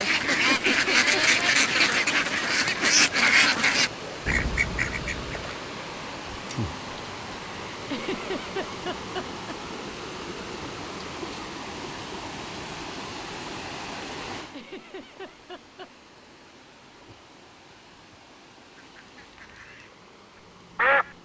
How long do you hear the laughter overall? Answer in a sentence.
You can hear the laughter for 4 seconds altogether.